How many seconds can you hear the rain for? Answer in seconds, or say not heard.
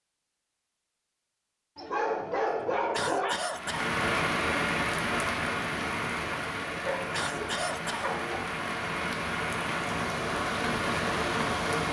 8 s.